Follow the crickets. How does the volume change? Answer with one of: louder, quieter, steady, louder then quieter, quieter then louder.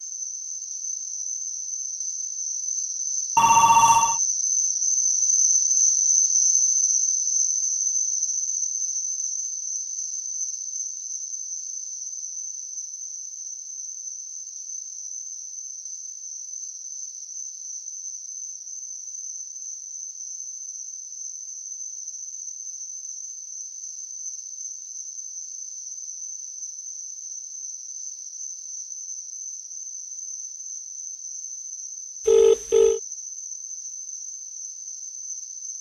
quieter.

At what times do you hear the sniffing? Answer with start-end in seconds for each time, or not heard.
not heard.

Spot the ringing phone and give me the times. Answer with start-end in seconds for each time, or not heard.
3.4-4.2, 32.2-33.0.